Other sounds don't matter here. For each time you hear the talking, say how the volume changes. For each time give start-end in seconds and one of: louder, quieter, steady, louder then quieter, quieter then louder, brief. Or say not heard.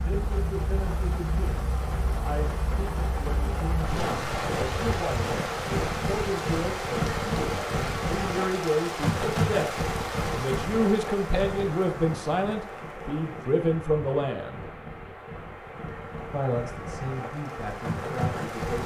0.0-14.7 louder
16.3-18.8 brief.